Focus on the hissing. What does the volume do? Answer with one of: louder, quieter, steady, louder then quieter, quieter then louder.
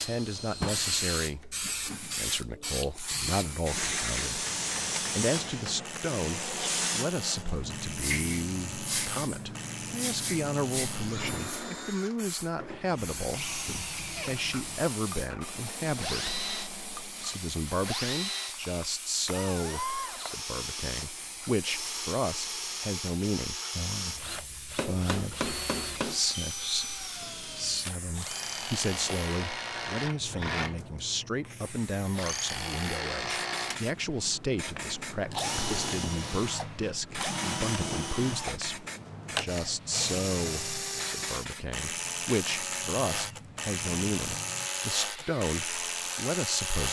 quieter.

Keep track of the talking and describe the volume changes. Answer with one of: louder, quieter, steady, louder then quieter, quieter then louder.
steady.